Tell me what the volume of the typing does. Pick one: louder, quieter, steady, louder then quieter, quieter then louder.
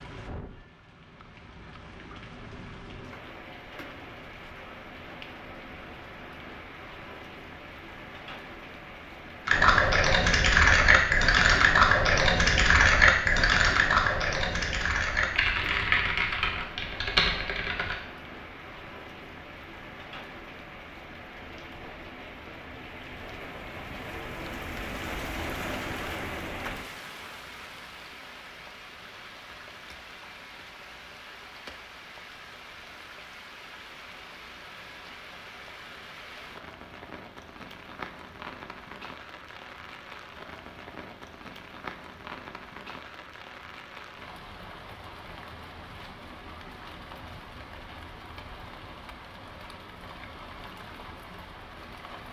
quieter.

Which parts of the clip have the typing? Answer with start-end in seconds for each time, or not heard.
9.4-17.9.